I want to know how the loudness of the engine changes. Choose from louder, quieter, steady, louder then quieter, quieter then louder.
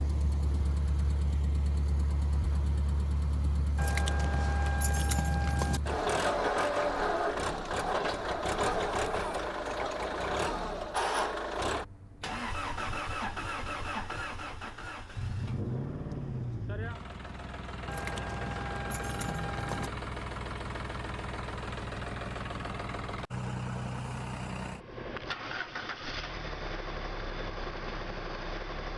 louder then quieter.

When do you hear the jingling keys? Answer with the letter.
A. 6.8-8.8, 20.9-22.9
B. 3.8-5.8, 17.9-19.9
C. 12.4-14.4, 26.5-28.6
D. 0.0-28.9
B.